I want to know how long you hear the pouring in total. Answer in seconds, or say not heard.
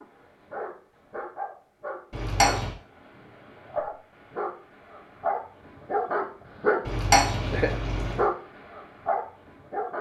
2 s.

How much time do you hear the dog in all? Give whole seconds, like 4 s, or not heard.
10 s.